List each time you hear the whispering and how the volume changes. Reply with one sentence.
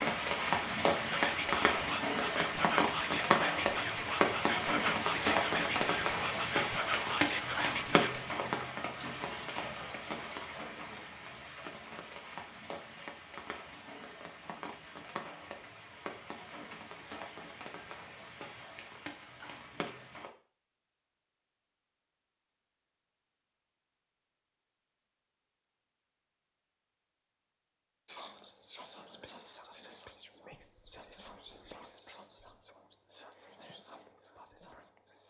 You can hear the whispering from 1.0 to 8.3 s, at a steady volume; and from 28.1 to 35.2 s, getting quieter.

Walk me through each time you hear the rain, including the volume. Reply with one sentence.
You can hear the rain from 0.0 to 20.3 s, getting quieter.